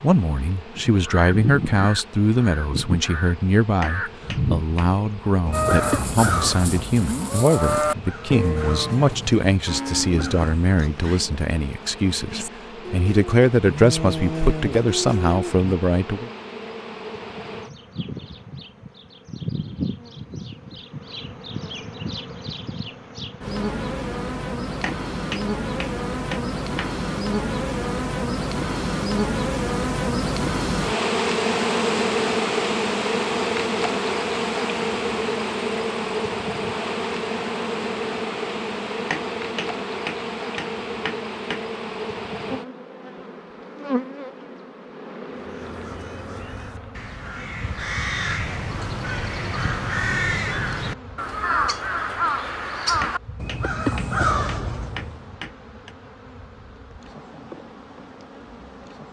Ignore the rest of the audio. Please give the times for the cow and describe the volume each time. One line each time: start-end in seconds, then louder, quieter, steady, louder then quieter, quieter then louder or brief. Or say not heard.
5.5-15.8 quieter then louder.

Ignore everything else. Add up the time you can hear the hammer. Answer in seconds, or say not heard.
9 s.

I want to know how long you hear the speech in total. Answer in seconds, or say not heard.
16 s.